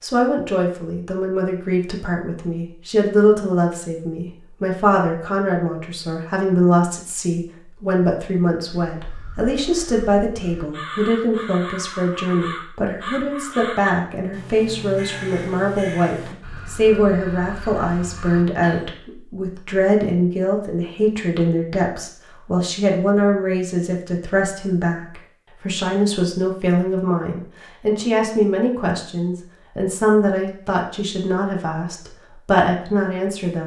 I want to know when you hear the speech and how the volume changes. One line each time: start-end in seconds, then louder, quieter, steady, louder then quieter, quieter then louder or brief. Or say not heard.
0.0-33.6 steady.